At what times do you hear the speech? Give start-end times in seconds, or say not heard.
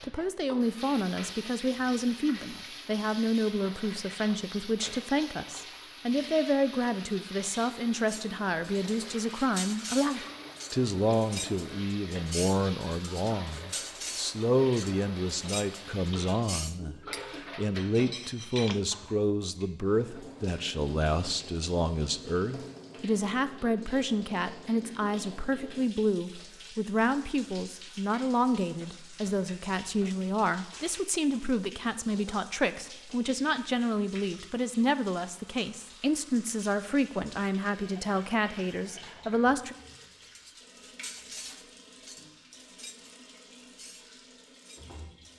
0.0-39.8.